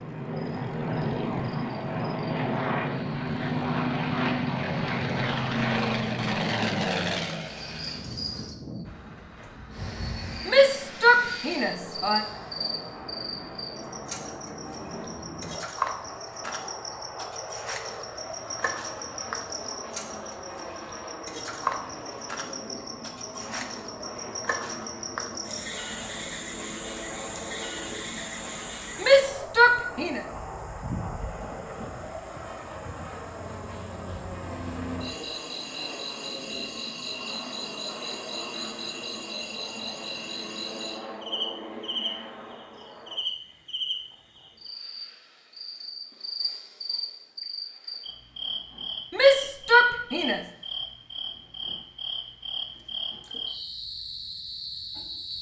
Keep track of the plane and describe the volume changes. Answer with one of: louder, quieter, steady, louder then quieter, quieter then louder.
quieter.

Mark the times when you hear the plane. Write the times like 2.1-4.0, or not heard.
0.0-43.1.